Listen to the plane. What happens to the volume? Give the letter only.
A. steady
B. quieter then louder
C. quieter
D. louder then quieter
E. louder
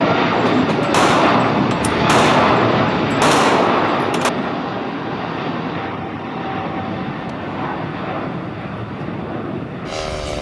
C.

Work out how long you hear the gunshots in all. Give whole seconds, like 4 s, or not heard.
4 s.